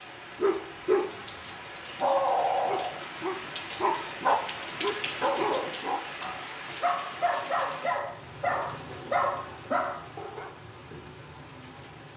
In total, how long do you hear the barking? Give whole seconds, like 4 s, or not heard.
9 s.